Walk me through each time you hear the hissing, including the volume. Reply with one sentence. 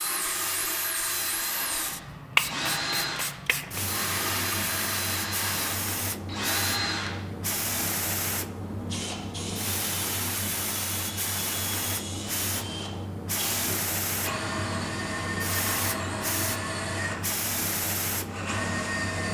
You can hear the hissing from 0.0 to 19.2 s, at a steady volume.